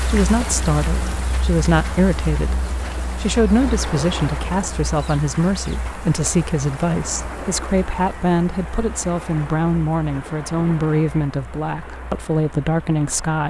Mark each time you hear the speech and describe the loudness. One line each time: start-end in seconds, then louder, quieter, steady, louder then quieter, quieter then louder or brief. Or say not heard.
0.1-13.4 steady.